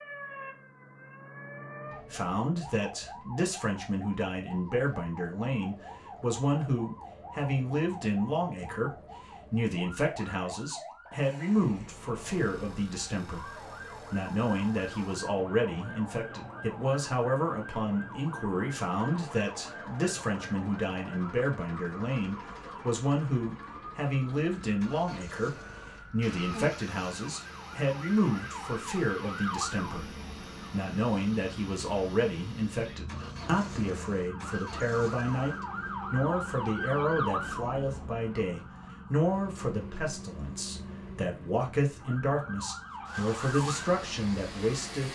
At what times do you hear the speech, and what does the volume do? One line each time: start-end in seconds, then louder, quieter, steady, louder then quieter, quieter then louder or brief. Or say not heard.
2.1-45.0 steady.